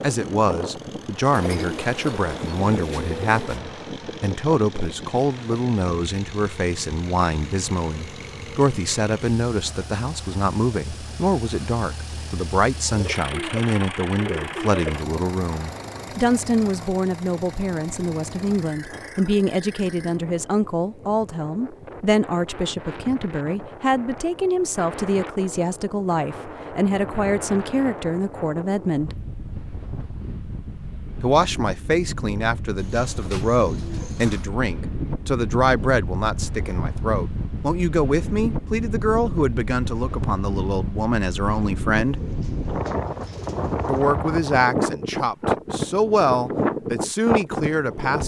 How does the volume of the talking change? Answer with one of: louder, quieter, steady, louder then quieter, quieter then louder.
steady.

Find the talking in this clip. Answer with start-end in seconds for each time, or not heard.
0.0-29.2, 31.2-42.2, 43.9-48.2.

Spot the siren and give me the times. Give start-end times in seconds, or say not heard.
not heard.